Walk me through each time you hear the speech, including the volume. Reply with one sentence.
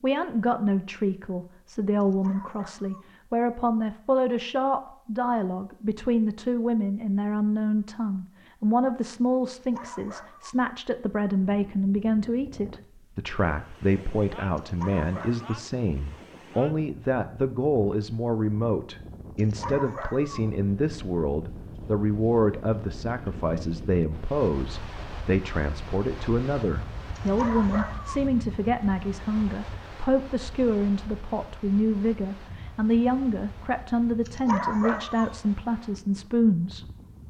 You can hear the speech from 0.0 to 37.2 s, at a steady volume.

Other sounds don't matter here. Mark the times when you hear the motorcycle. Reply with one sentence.
You can't hear the motorcycle here.